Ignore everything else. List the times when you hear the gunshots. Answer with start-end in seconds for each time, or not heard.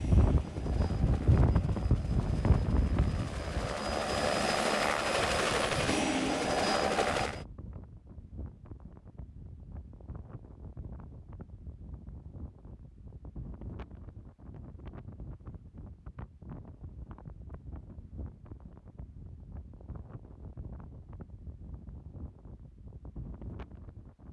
not heard.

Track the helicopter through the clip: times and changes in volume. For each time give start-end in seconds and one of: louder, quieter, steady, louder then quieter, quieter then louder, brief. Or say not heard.
0.0-7.5 louder.